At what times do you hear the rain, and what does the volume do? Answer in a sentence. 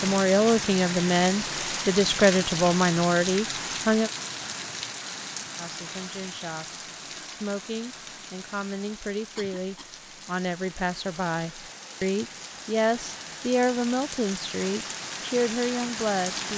You can hear the rain from 0.0 to 16.5 s, getting quieter then louder.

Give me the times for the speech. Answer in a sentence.
You can hear the speech from 0.0 to 4.1 s and from 5.5 to 16.5 s.